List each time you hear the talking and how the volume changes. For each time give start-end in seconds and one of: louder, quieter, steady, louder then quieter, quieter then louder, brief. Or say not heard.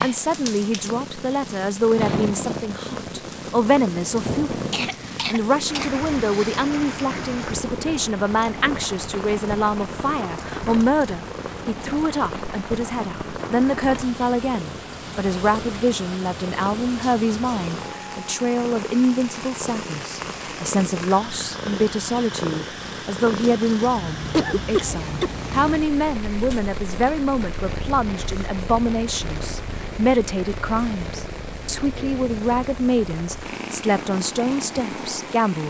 0.0-35.6 steady.